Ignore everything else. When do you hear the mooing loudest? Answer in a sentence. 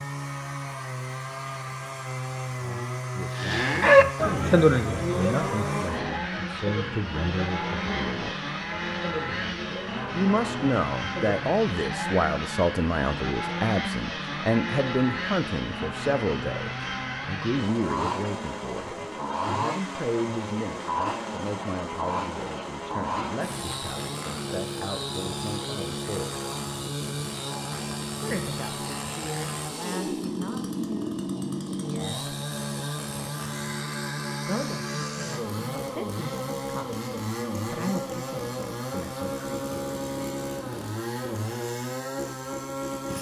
The loudest moment of the mooing is at 4 seconds.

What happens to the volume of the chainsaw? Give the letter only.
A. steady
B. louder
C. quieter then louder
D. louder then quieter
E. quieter
A.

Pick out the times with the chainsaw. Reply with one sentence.
You can hear the chainsaw from 0.0 to 43.1 s.